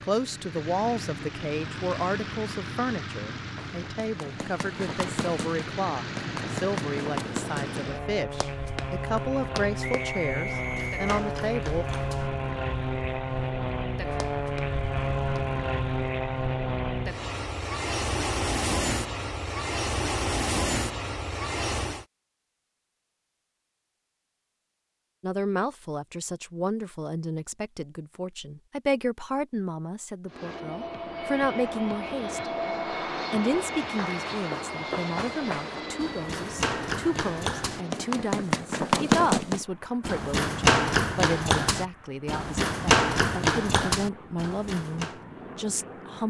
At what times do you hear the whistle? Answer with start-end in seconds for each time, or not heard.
9.8-11.2.